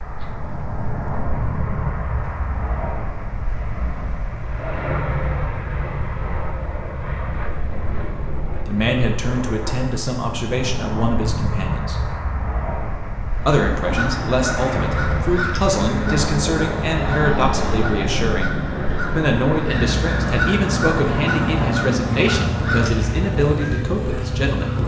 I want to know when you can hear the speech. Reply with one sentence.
You can hear the speech from 8.6 to 11.9 s and from 13.4 to 24.8 s.